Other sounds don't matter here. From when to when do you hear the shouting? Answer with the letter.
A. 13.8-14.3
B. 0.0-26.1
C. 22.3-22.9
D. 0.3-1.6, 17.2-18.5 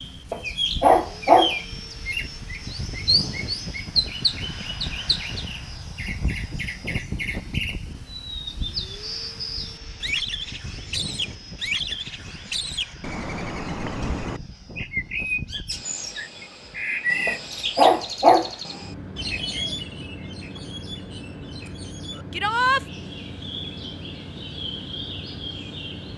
C.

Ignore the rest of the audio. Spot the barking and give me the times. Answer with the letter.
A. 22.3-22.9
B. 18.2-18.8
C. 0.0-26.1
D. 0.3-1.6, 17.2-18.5
D.